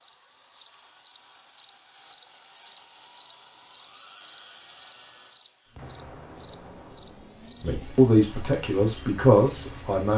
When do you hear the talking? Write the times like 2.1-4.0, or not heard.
7.6-10.1.